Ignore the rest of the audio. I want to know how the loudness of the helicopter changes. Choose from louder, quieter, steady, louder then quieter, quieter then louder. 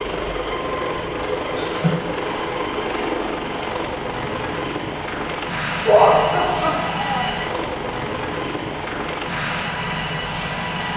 steady.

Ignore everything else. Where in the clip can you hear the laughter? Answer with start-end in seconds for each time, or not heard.
1.2-2.0, 5.8-7.3.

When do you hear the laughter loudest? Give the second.
6 s.